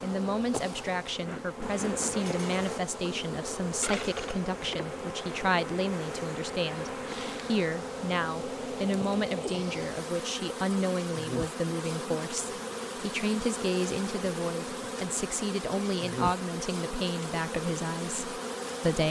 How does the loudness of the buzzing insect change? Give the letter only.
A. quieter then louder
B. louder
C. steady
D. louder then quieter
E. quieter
C.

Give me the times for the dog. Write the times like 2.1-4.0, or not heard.
not heard.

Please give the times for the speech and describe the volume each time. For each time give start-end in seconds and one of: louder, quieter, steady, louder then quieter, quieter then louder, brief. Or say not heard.
0.0-19.0 steady.